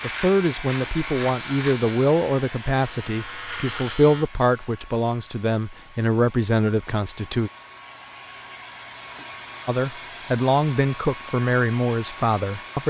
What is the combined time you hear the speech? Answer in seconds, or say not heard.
11 s.